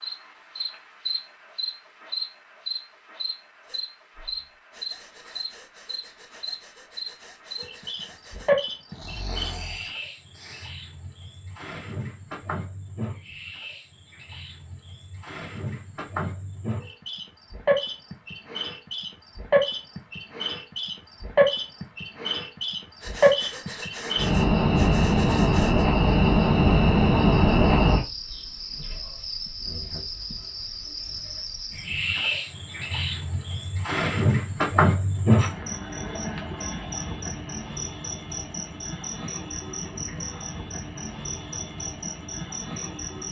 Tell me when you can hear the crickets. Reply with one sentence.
The crickets can be heard from 0.0 to 43.2 s.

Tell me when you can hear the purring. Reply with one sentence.
The purring can't be heard in this clip.